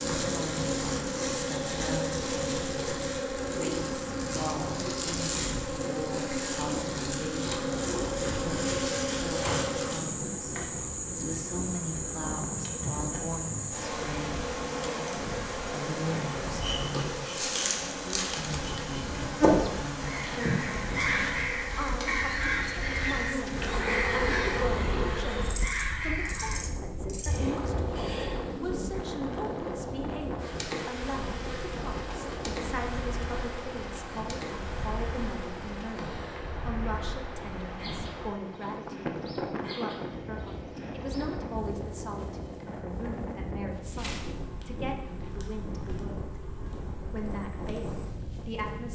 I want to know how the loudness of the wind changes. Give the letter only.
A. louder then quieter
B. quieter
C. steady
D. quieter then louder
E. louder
C.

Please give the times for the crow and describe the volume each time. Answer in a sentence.
You can hear the crow from 20.0 to 26.6 s, at a steady volume.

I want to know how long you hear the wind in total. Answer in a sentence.
You can hear the wind for 49 seconds altogether.